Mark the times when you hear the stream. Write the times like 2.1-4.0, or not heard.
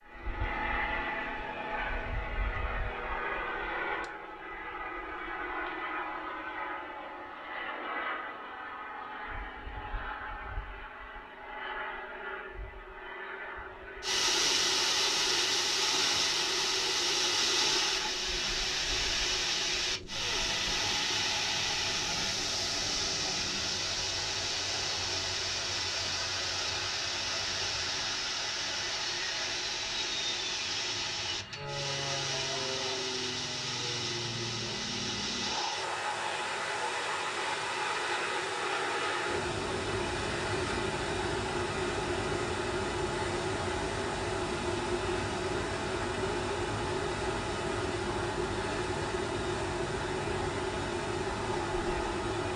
14.0-52.5.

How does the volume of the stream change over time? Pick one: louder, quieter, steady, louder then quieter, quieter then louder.
quieter.